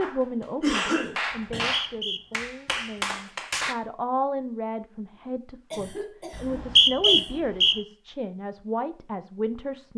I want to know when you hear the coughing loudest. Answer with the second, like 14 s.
1 s.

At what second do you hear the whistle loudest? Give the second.
7 s.